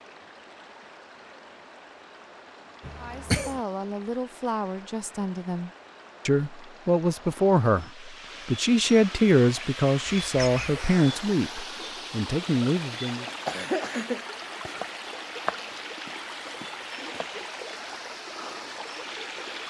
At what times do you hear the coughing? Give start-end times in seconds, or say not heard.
2.8-3.6, 10.2-10.8, 13.4-14.2.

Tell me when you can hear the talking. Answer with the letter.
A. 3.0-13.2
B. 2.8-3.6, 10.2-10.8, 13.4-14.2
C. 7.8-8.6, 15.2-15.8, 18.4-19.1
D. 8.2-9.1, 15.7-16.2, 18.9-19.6
A.